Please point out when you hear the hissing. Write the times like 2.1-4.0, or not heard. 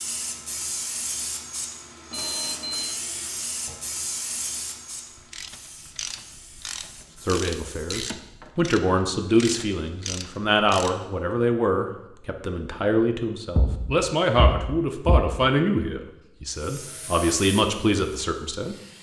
0.0-8.1, 16.6-18.9.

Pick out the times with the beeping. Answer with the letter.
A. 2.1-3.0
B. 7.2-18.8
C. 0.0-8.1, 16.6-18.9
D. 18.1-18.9
A.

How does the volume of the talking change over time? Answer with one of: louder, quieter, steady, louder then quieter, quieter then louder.
steady.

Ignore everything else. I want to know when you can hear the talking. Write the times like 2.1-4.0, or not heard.
7.2-18.8.